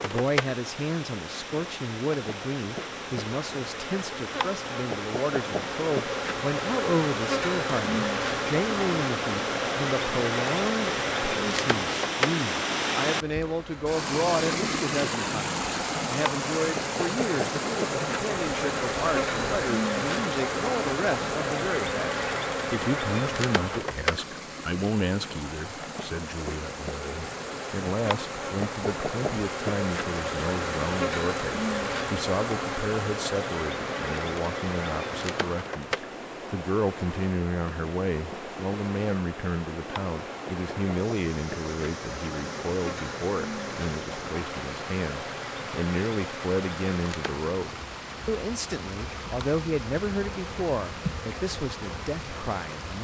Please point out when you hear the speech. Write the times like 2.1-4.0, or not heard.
0.0-52.9.